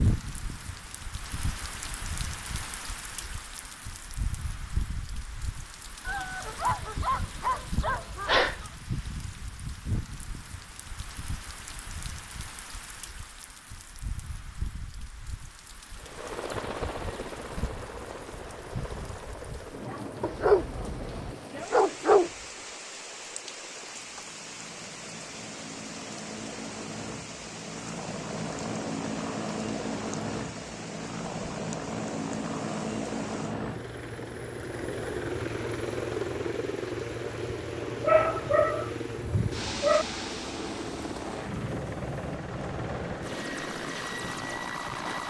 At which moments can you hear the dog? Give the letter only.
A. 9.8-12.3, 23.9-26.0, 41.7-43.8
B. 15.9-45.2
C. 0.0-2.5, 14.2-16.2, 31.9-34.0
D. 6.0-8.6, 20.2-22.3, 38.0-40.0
D.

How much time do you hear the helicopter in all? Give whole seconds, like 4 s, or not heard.
29 s.